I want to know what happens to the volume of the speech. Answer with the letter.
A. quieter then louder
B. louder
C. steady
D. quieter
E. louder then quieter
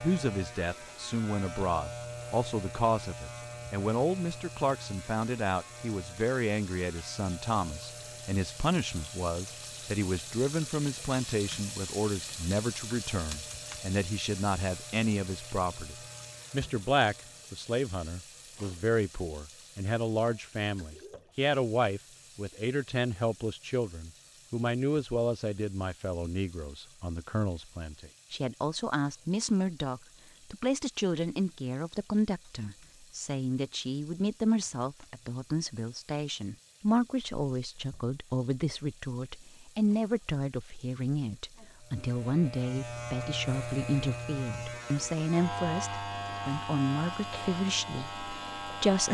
C.